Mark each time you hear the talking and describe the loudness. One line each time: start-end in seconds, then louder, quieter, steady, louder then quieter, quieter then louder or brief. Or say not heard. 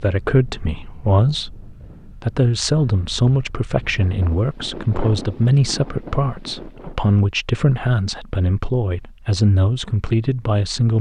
0.0-10.9 steady.